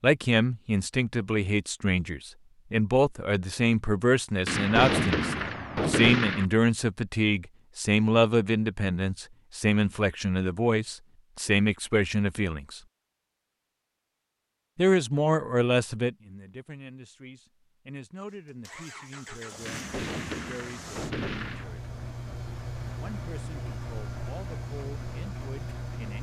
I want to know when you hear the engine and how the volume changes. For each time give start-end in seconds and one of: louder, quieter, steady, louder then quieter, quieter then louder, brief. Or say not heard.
18.2-26.1 louder.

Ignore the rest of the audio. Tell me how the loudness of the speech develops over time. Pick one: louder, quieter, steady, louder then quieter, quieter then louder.
quieter.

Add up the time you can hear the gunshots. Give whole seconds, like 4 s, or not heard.
4 s.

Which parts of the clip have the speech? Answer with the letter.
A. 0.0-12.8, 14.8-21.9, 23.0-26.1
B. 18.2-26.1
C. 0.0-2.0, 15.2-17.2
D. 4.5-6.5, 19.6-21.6
A.